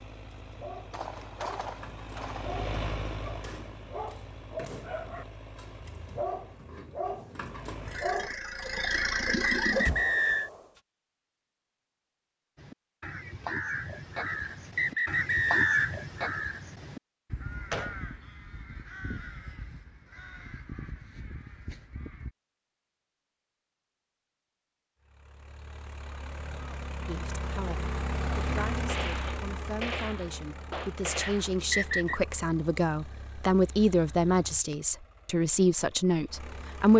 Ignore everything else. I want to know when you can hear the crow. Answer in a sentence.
You can hear the crow from 12.6 to 22.3 s.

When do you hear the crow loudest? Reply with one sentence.
The loudest moment of the crow is at 16 seconds.